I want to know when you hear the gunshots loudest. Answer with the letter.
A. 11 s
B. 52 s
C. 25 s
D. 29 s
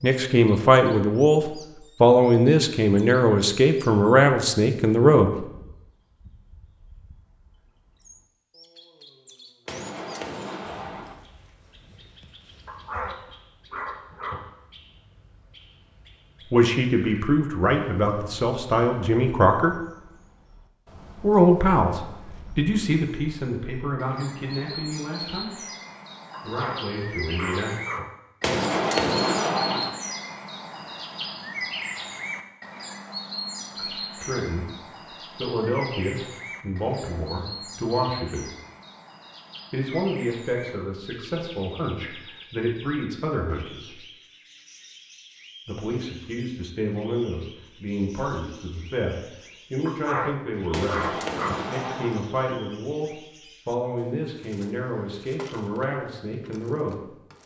D.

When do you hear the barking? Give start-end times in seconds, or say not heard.
12.7-14.4, 26.3-28.1, 49.9-51.7.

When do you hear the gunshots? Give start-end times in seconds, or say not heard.
9.7-11.2, 28.4-29.9, 50.7-52.2.